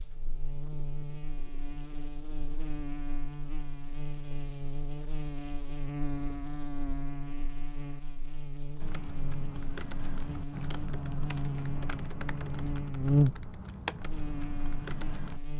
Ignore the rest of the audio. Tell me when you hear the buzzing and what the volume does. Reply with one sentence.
The buzzing can be heard from 0.0 to 15.5 s, getting louder.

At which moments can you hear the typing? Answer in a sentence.
The typing can be heard from 8.8 to 15.4 s.